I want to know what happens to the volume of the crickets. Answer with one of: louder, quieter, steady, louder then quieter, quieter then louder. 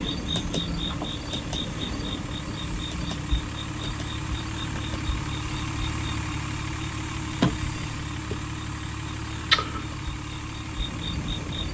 quieter then louder.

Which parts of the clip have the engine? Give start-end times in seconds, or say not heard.
0.0-11.6.